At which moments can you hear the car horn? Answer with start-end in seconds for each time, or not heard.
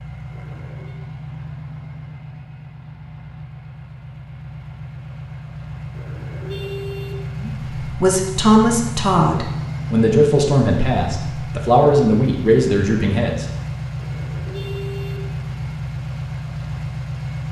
0.3-0.9, 5.9-7.2, 13.9-15.3.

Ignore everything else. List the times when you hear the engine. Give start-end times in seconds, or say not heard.
0.0-17.4.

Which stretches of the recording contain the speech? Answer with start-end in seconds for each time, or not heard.
7.4-13.4.